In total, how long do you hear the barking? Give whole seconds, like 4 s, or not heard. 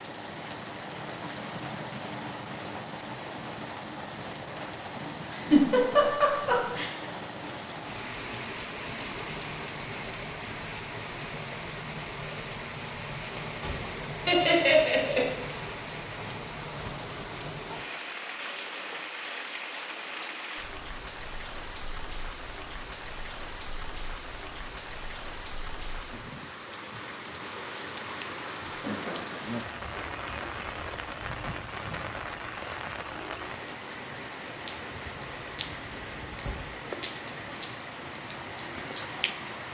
not heard.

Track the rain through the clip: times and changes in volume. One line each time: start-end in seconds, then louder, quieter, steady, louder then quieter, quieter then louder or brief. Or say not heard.
0.0-39.6 steady.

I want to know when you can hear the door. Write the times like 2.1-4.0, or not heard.
13.4-14.1, 35.1-36.8.